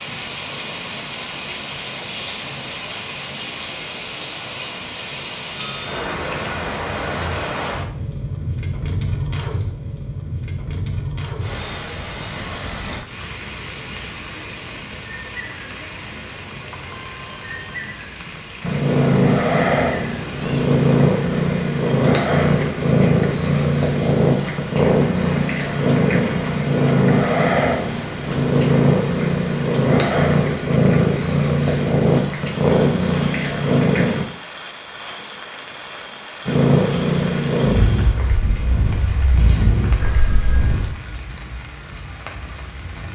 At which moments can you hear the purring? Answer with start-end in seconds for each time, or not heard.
18.6-34.2, 36.5-40.9.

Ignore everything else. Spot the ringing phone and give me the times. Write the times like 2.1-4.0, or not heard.
5.5-6.2, 16.0-18.0, 40.0-40.8.